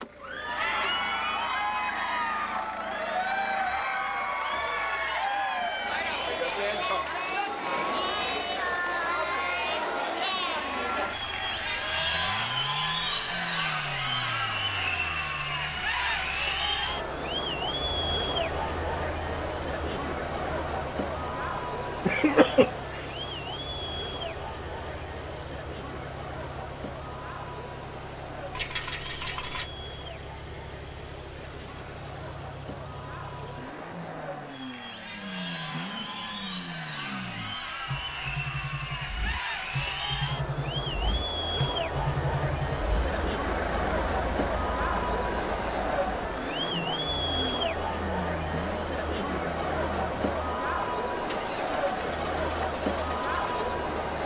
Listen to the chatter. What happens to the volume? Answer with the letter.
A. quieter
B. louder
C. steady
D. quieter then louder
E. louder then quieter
D.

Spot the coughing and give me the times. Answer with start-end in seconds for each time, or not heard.
22.1-23.1.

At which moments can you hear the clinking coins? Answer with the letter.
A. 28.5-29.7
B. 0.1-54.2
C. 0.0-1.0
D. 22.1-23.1
A.